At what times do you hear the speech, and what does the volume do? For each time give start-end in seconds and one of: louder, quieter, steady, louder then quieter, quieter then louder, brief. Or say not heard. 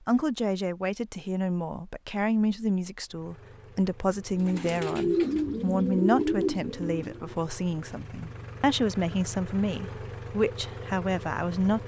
0.1-11.8 steady.